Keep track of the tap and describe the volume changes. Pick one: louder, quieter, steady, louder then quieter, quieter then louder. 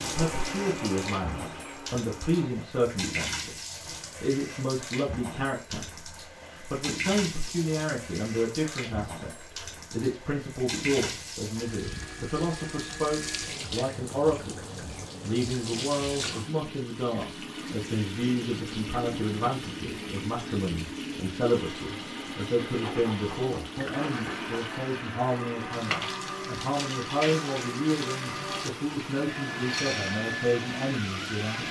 steady.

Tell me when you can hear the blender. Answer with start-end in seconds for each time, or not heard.
0.0-2.5, 21.4-31.6.